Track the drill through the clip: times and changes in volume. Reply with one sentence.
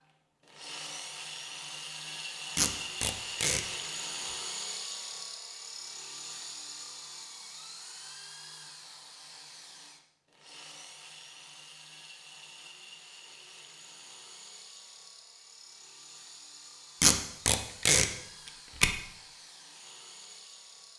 You can hear the drill from 0.0 to 20.9 s, getting quieter.